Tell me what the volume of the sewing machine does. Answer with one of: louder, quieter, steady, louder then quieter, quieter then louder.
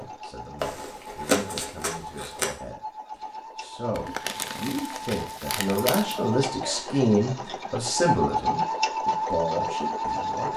louder.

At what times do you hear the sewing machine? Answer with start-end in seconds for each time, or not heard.
0.0-10.5.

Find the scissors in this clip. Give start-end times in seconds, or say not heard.
0.6-2.5, 5.8-6.2.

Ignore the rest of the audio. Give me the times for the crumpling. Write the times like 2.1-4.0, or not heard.
3.9-6.0.